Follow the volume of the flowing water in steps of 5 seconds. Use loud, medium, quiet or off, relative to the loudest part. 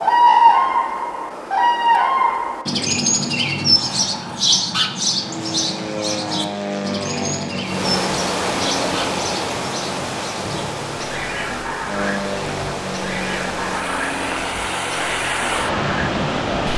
off, loud, medium, loud.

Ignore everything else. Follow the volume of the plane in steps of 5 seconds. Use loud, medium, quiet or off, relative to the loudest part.
off, loud, loud, medium.